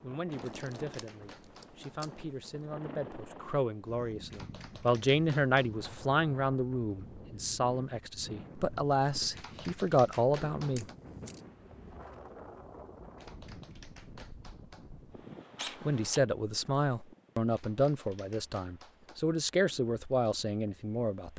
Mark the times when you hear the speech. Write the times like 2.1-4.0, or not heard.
0.0-10.8, 15.8-21.3.